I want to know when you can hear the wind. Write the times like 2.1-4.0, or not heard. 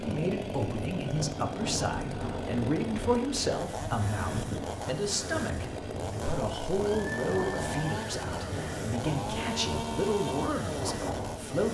0.0-11.7.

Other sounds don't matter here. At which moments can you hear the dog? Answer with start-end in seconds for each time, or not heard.
not heard.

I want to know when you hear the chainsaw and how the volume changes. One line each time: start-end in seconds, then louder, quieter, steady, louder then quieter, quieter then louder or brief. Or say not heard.
0.0-11.7 steady.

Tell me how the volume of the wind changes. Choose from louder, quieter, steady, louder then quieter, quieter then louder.
steady.